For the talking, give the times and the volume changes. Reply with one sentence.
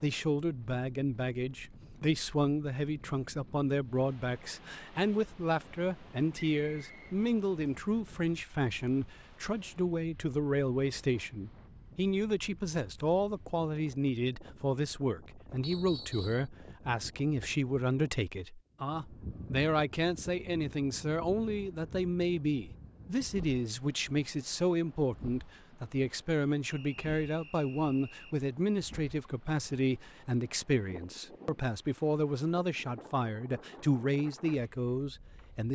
The talking can be heard from 0.0 to 35.6 s, at a steady volume.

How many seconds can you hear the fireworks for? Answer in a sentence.
You can't hear the fireworks here.